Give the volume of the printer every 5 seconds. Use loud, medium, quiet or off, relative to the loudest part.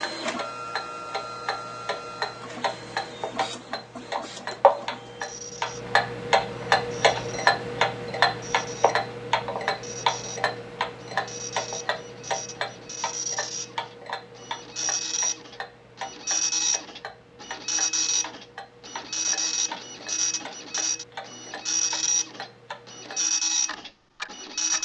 medium, quiet, medium, loud, loud.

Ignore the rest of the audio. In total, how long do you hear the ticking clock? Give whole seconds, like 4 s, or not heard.
25 s.